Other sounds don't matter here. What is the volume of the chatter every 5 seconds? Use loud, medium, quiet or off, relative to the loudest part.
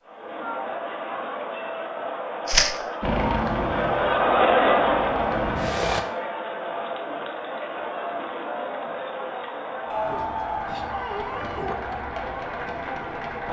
loud, medium, medium.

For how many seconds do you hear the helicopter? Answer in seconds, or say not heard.
3 s.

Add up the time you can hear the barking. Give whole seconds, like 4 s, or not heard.
2 s.